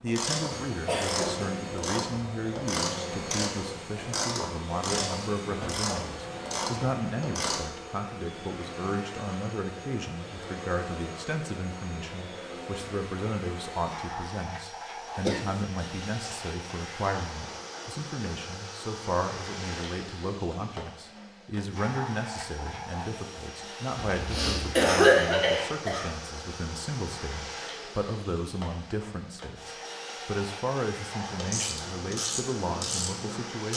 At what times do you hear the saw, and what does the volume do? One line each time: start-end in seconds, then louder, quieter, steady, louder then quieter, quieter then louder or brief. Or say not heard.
not heard.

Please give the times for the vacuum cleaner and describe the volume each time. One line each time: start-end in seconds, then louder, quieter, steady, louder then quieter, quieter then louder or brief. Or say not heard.
0.0-33.7 steady.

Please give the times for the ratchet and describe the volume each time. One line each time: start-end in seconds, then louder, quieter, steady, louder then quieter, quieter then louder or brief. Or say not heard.
0.1-7.7 steady
31.2-33.7 brief.